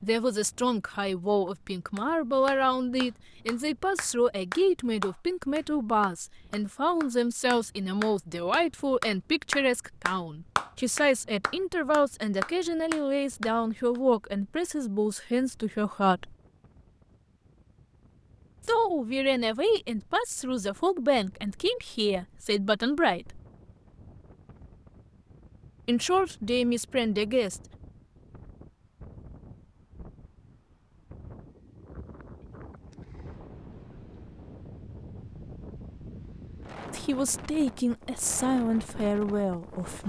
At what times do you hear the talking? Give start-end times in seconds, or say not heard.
0.0-16.4, 18.6-23.4, 25.9-27.6, 36.9-40.0.